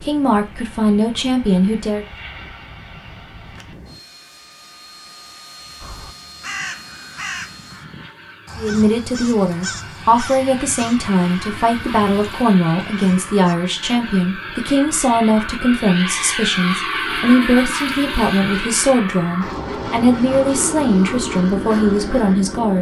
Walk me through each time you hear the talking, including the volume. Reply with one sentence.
You can hear the talking briefly from 0.0 to 2.0 s; and from 8.6 to 22.7 s, at a steady volume.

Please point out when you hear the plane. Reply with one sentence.
The plane can be heard from 0.0 to 22.7 s.